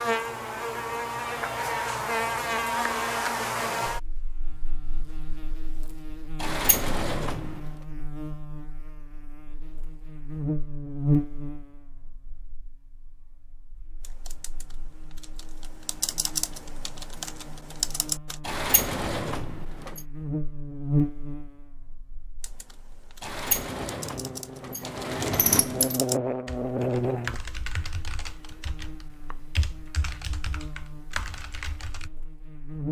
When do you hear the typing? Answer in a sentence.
The typing can be heard from 14.0 to 18.4 s and from 22.4 to 32.1 s.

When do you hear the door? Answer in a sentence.
The door can be heard from 6.4 to 7.6 s, from 18.4 to 20.0 s and from 23.2 to 26.0 s.